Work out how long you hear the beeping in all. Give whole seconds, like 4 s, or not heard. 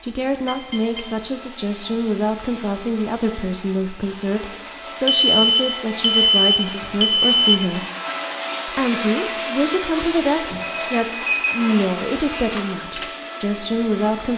4 s.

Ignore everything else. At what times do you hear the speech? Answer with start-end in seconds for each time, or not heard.
0.0-7.8, 8.7-14.3.